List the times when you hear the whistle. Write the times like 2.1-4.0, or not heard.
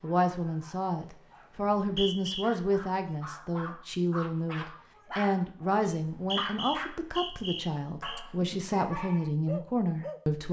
1.8-2.5, 5.9-8.2.